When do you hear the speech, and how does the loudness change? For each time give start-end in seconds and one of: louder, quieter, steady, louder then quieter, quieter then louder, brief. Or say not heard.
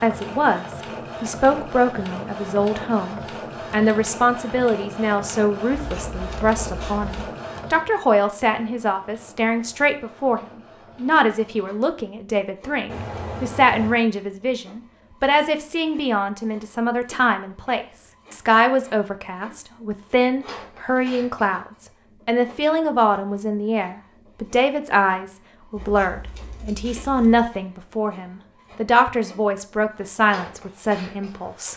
0.0-31.7 steady.